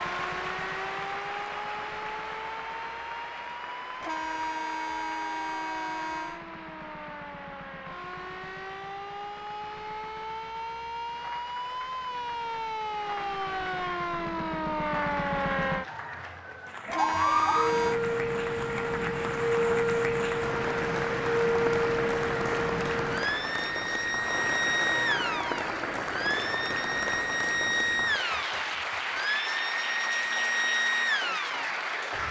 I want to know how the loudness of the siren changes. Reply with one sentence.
The volume of the siren goes up.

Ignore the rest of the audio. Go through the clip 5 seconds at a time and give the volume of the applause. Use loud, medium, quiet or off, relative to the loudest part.
medium, quiet, quiet, medium, loud, loud, loud.